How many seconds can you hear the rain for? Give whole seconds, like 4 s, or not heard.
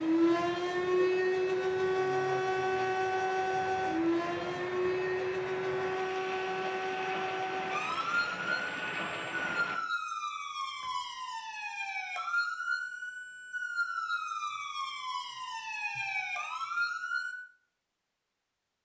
10 s.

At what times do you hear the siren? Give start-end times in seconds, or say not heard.
0.0-17.4.